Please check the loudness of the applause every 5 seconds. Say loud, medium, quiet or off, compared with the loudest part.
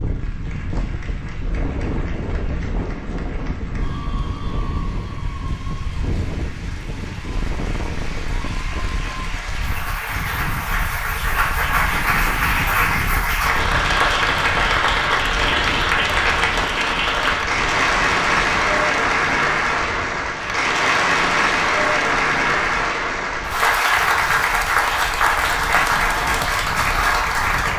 quiet, quiet, loud, loud, loud, loud.